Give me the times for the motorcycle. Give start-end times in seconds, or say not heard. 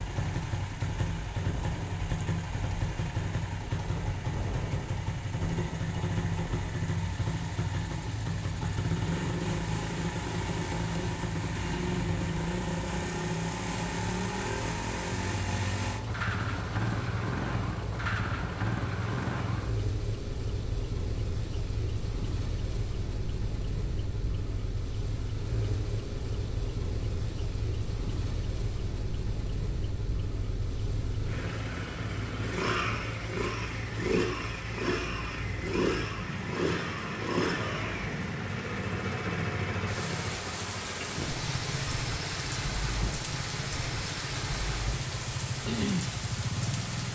0.0-47.1.